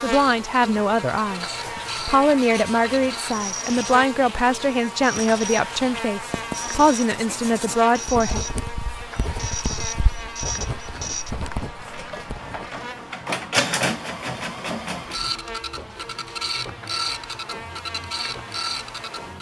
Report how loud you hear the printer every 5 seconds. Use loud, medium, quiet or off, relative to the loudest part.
medium, loud, loud, loud.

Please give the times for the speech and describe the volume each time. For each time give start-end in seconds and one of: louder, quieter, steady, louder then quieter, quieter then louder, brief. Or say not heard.
0.0-8.4 steady.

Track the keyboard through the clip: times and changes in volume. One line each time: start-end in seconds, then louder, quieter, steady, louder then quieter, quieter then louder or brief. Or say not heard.
not heard.